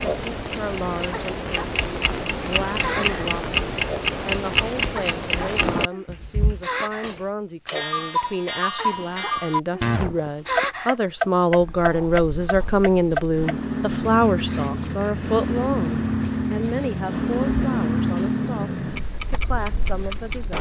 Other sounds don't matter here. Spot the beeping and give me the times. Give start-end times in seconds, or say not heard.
not heard.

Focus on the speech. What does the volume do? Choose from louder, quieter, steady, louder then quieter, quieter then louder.
louder then quieter.